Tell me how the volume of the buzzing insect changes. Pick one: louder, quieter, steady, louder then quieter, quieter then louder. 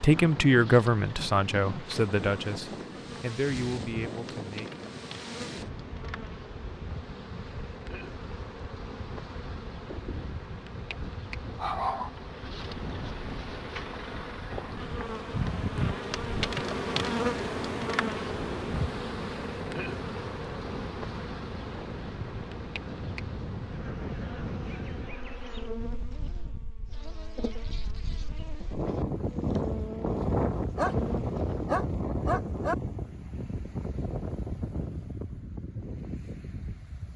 louder then quieter.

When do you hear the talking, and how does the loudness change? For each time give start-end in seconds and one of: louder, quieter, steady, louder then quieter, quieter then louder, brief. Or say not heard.
0.0-4.8 quieter.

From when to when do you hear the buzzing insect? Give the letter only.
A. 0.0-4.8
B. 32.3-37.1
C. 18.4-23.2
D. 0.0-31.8
D.